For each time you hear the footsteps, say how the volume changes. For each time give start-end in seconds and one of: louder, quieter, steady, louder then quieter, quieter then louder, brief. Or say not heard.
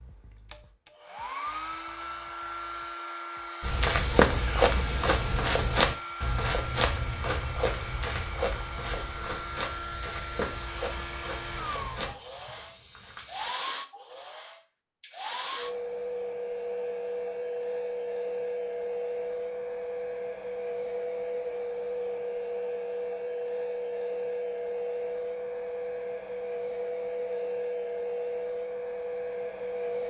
3.6-13.5 quieter.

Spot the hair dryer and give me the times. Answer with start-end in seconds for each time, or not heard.
0.0-30.0.